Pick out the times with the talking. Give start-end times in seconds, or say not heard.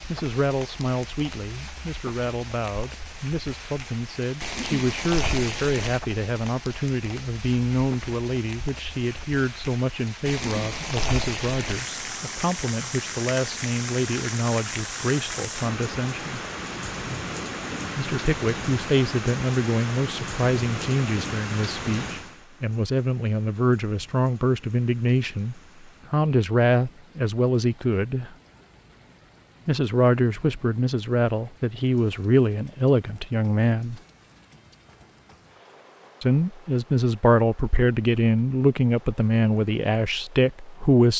0.1-16.4, 17.9-28.3, 29.6-34.0, 36.2-41.1.